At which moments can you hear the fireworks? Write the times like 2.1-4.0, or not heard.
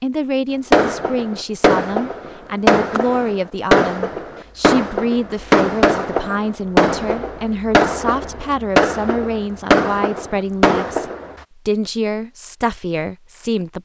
0.7-11.3.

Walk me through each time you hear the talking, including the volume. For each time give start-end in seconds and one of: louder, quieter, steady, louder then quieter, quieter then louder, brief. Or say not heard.
0.0-13.8 steady.